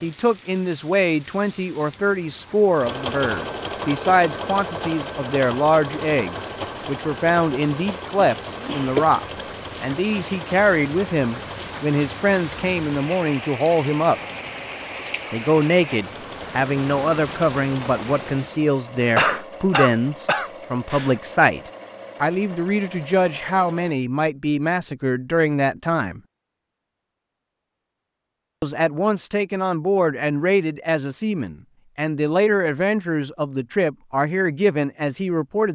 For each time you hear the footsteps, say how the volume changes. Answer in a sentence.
The footsteps can't be heard in this clip.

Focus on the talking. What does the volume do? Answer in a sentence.
The volume of the talking stays about the same.